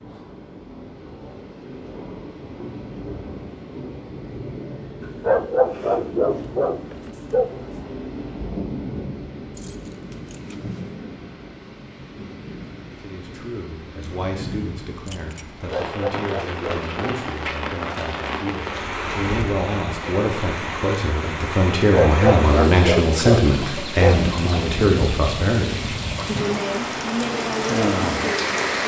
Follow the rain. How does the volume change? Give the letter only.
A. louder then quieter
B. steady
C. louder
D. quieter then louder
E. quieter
C.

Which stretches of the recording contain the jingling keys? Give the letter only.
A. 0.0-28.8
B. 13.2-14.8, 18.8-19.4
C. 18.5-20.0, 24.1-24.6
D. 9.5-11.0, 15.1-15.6
D.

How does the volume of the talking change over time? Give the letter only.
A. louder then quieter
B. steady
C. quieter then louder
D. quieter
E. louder
A.